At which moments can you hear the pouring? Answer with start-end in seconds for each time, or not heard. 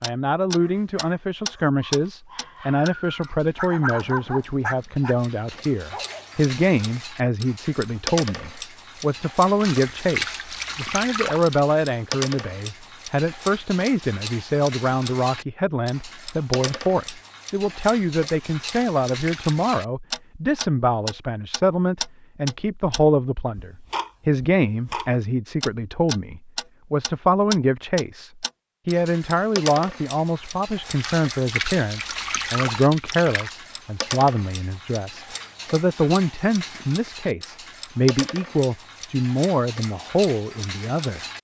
9.6-11.6, 18.7-19.6, 30.9-33.5.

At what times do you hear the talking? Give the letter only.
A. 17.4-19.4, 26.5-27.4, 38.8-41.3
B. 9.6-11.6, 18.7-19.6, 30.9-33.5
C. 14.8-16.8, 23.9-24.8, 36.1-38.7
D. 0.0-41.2
D.